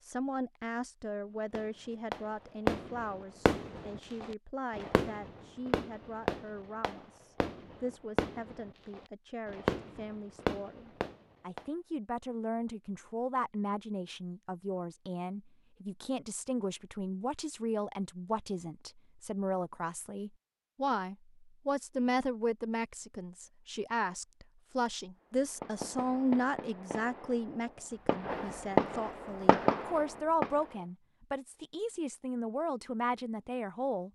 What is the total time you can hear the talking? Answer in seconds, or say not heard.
34 s.